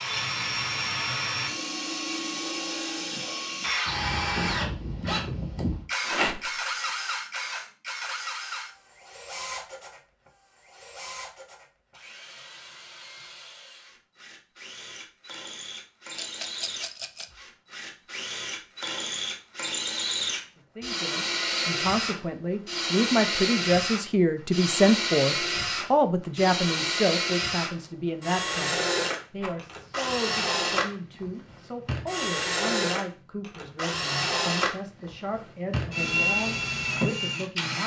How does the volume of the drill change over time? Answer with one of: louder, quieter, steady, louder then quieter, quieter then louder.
quieter then louder.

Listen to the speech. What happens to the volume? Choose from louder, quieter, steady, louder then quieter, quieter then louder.
quieter.